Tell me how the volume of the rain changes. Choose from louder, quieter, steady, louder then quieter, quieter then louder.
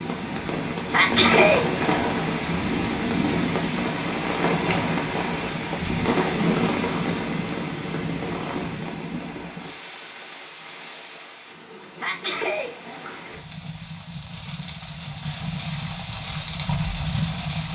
quieter then louder.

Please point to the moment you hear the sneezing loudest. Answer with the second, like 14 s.
1 s.